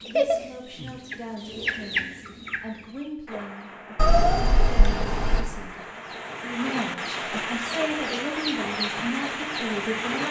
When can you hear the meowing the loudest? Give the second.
4 s.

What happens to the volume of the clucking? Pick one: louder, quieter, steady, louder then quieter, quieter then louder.
quieter then louder.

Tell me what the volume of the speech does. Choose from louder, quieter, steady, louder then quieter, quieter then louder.
louder.